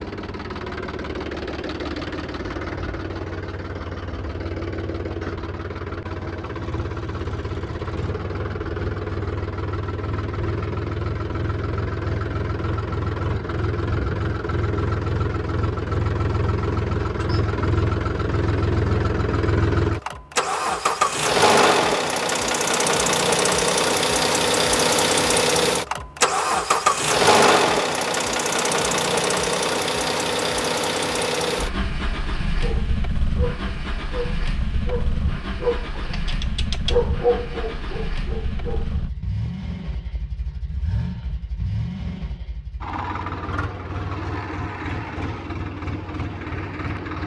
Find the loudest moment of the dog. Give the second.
37 s.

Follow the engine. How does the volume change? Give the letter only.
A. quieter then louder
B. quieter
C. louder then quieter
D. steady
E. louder
C.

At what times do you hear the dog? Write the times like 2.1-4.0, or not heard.
32.6-39.0.